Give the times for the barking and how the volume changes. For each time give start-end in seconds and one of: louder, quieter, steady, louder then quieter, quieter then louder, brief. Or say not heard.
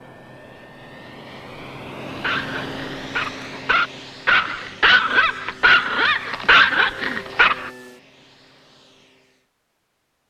2.1-7.7 louder.